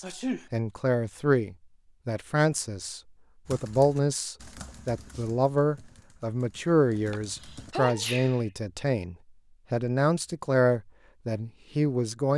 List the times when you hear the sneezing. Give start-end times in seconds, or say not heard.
0.0-0.5, 7.1-8.4.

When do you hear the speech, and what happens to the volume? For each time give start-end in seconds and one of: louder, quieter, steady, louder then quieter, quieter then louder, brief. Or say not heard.
0.0-12.3 steady.